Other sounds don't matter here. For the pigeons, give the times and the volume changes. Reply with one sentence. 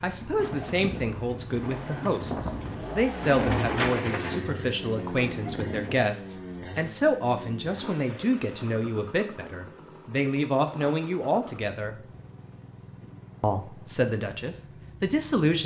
You can hear the pigeons from 0.3 to 6.0 s, getting louder then quieter.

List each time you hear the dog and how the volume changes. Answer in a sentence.
You can't hear the dog here.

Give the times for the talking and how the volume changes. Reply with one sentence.
The talking can be heard from 0.0 to 11.9 s, at a steady volume; and briefly from 13.4 to 15.6 s.